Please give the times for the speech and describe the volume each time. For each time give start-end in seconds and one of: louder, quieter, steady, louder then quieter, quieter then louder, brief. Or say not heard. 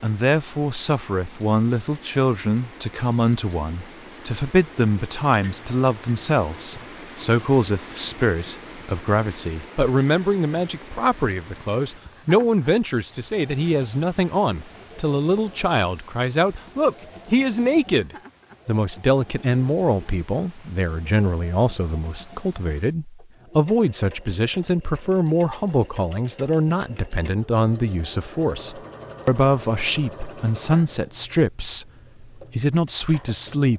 0.0-33.7 steady.